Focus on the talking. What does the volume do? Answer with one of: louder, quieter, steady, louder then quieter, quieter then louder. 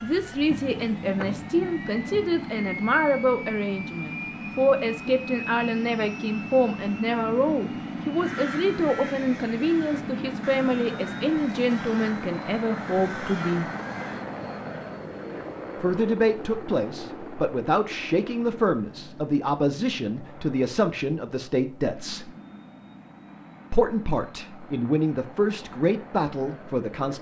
steady.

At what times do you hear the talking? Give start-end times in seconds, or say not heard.
0.0-13.7, 15.8-22.3, 23.7-27.1.